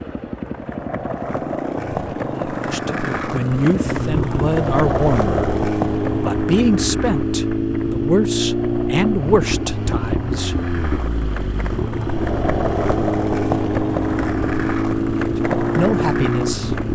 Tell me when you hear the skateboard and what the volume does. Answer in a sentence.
You can hear the skateboard from 0.1 to 16.8 s, getting quieter then louder.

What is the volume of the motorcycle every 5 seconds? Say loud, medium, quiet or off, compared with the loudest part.
medium, loud, loud, loud.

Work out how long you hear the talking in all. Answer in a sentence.
The talking can be heard for 8 seconds in total.